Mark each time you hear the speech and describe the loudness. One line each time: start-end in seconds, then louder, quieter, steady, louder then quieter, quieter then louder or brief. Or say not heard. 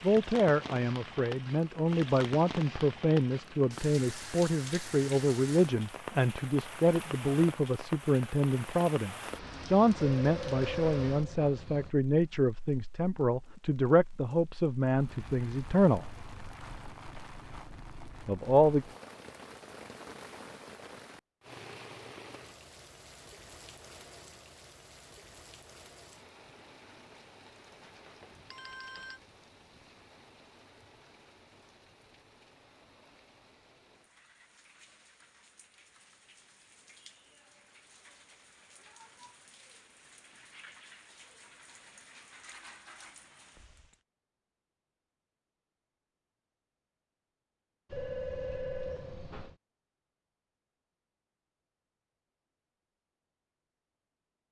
0.0-16.1 steady
18.2-18.9 brief.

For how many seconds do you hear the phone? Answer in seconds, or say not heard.
5 s.